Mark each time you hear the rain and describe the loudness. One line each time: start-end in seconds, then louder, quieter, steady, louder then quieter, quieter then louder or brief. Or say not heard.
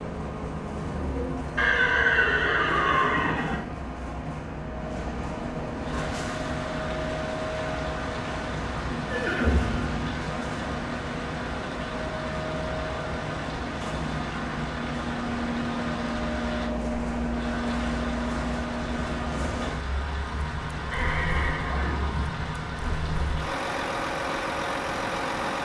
5.7-25.4 steady.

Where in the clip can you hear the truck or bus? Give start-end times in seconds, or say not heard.
0.0-25.6.